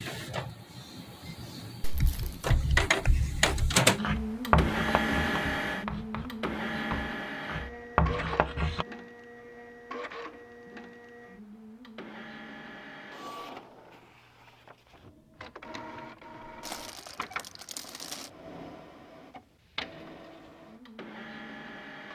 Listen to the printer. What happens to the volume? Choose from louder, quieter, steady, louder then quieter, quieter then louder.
quieter.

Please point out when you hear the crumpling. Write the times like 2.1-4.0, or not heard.
1.8-2.5, 16.6-18.3.